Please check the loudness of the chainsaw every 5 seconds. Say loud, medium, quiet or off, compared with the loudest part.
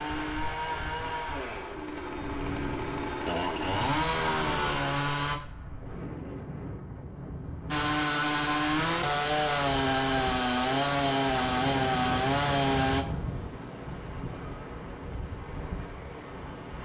medium, loud, loud, off.